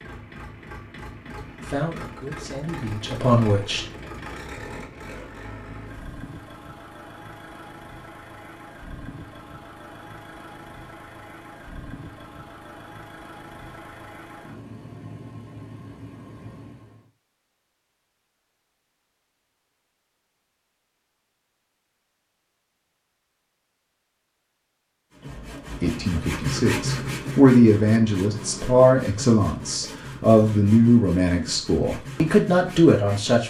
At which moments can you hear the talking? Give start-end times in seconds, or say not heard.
1.6-3.9, 25.8-33.4.